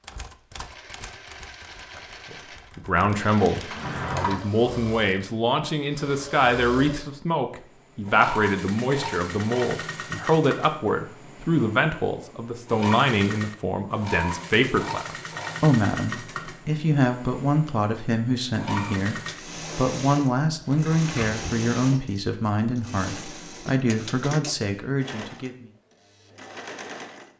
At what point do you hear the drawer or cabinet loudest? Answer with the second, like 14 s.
4 s.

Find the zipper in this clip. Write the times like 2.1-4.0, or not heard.
not heard.